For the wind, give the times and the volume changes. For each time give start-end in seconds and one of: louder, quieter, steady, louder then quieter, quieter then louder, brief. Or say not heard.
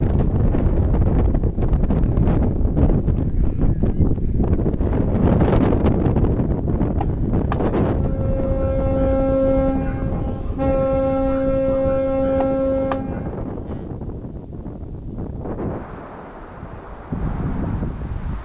0.0-18.4 quieter.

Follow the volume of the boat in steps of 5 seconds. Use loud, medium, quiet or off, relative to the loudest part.
off, loud, loud, off.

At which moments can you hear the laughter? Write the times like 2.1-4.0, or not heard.
7.0-7.6, 12.4-13.0.